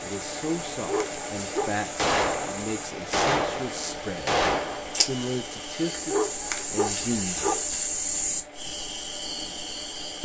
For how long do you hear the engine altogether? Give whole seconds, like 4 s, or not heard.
10 s.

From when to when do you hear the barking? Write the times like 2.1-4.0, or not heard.
0.7-1.9, 5.9-7.6.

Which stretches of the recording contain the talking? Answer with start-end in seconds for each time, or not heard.
0.0-7.7.